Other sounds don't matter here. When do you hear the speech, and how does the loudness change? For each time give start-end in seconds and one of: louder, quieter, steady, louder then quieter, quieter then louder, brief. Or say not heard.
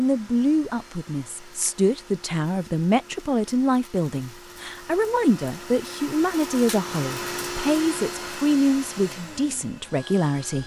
0.0-10.6 steady.